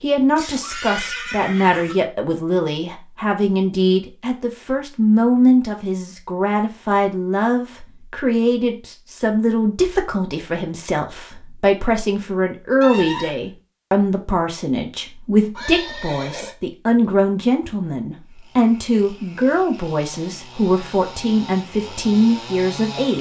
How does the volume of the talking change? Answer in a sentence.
The volume of the talking stays about the same.